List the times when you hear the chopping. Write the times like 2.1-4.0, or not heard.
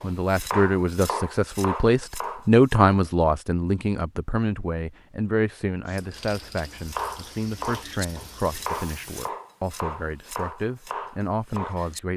0.0-3.0, 6.7-12.0.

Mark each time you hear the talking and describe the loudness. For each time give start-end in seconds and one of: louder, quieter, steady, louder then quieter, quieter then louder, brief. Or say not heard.
0.0-12.1 quieter.